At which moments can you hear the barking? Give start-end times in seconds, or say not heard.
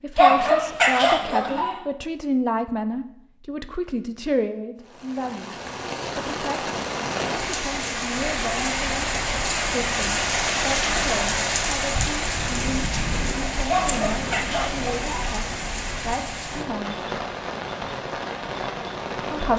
0.1-1.8, 13.7-15.4.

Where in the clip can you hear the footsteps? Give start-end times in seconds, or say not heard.
not heard.